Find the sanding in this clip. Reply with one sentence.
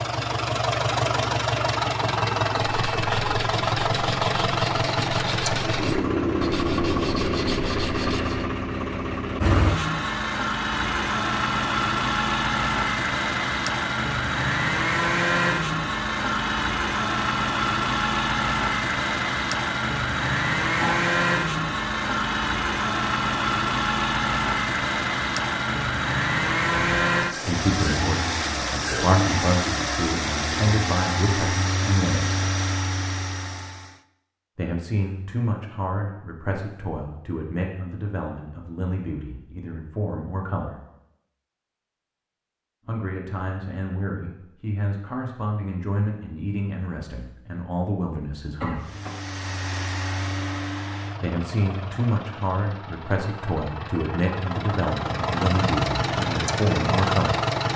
You can hear the sanding from 2.5 to 8.4 s.